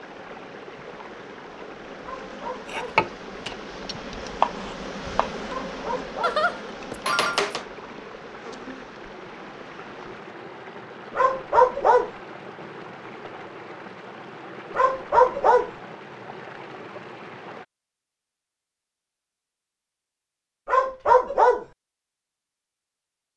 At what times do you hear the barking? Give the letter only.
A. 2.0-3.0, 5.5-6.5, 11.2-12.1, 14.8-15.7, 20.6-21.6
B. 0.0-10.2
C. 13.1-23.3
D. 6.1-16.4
A.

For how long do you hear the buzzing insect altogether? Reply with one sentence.
The buzzing insect can be heard for 10 seconds in total.